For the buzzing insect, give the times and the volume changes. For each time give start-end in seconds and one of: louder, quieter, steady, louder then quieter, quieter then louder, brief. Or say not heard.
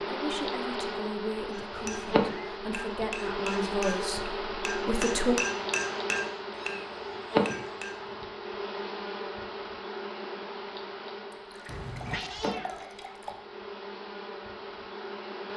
0.0-15.5 quieter.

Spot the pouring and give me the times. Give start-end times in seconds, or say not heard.
11.3-13.3.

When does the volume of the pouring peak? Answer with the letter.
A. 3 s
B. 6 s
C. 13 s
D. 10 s
C.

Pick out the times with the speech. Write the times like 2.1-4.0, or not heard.
0.0-5.3.